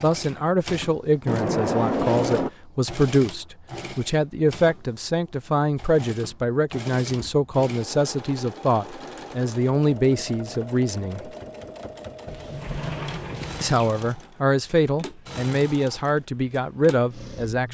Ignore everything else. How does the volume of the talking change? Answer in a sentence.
The loudness of the talking stays about the same.